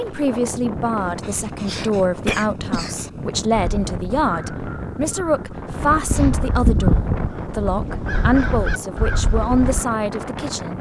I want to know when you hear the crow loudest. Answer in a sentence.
The volume of the crow peaks at 7 seconds.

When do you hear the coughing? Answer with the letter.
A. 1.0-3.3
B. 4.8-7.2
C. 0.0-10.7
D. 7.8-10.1
A.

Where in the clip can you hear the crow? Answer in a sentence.
The crow can be heard from 3.5 to 9.8 s.